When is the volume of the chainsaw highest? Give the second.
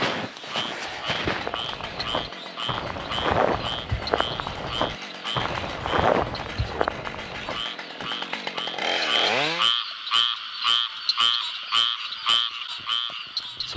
9 s.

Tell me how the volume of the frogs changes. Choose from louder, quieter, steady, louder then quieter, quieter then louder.
louder.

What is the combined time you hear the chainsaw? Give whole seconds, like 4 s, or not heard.
10 s.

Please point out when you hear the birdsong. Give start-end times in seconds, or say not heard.
not heard.